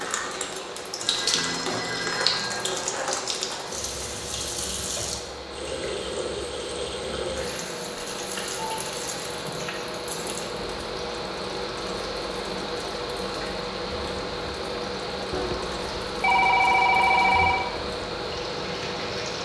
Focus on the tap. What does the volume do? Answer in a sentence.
The volume of the tap goes down.